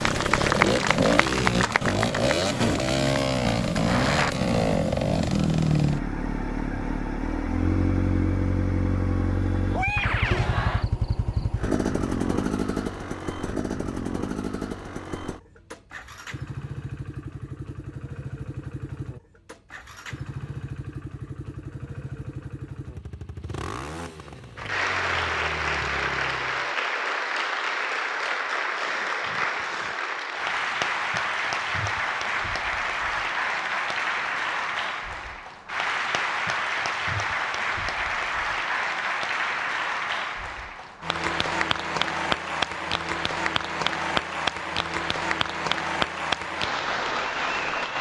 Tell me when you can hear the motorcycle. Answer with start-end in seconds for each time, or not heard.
0.0-26.7.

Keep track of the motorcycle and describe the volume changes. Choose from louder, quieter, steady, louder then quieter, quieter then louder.
quieter.